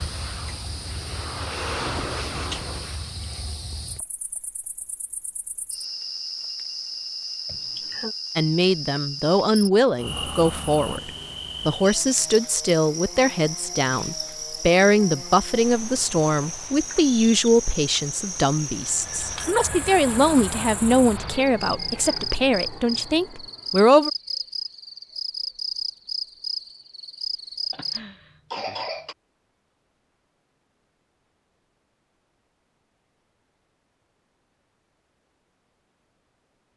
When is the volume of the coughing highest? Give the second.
29 s.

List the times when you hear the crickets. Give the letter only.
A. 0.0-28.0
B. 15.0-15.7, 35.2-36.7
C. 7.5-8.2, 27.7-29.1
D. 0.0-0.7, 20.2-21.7
A.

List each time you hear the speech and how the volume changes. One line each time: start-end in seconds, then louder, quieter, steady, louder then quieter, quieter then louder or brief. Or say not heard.
8.3-24.1 steady.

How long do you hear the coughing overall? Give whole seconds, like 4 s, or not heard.
2 s.